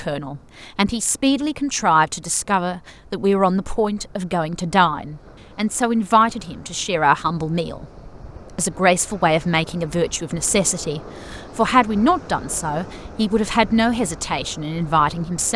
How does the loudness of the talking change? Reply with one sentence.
The volume of the talking stays about the same.